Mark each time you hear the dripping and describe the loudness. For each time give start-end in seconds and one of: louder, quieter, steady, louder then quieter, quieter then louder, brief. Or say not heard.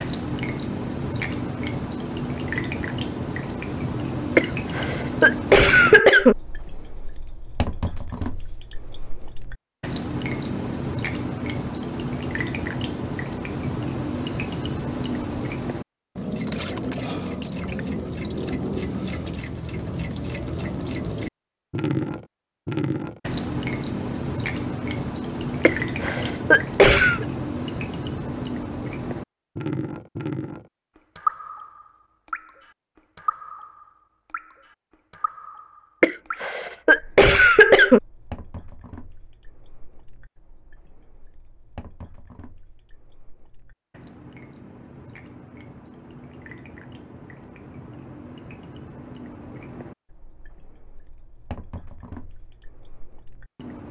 0.0-53.8 quieter.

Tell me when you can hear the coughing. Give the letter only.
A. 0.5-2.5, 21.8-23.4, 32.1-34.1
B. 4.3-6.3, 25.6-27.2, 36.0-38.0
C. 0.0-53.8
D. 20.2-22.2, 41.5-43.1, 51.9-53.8
B.